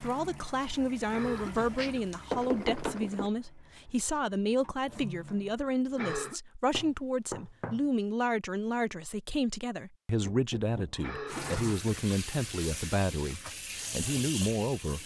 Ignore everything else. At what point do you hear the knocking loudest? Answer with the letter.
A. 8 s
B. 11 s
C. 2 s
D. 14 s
C.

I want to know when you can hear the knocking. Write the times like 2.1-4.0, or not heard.
1.6-3.3, 6.7-7.8, 10.2-11.9.